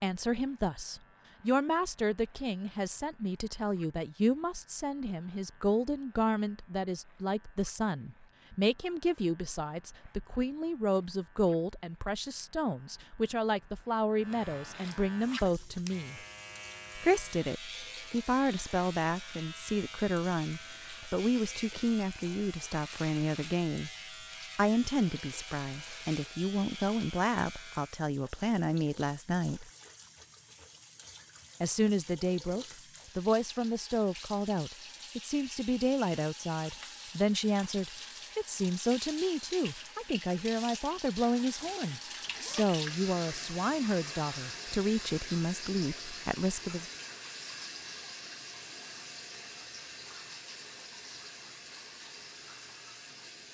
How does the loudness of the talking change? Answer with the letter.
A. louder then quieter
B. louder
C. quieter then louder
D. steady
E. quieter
D.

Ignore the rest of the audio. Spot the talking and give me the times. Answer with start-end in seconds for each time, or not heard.
0.0-16.2, 16.9-23.9, 24.6-29.7, 31.6-46.9.